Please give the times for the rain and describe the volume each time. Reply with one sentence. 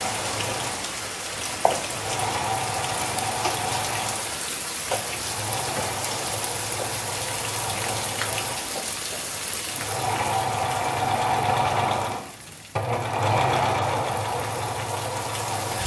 The rain can be heard from 0.0 to 15.8 s, getting quieter.